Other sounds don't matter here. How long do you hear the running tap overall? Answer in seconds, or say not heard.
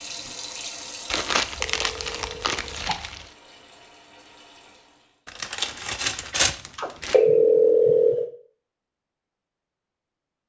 5 s.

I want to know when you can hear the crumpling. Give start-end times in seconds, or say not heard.
1.1-3.2, 5.2-7.2.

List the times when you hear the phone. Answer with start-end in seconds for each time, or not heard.
1.6-3.0, 6.8-8.3.